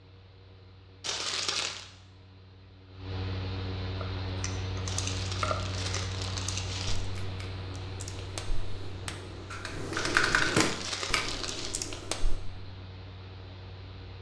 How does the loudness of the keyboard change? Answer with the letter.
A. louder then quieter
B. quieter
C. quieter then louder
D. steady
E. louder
C.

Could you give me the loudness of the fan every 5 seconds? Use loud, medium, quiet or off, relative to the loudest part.
loud, loud, medium.